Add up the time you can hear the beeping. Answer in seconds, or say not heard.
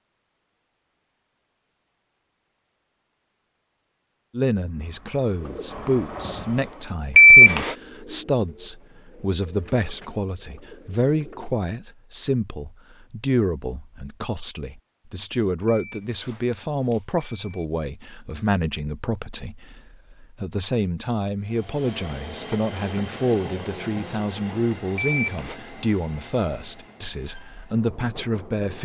3 s.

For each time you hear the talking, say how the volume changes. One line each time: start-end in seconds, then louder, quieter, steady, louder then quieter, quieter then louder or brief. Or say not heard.
4.3-28.8 steady.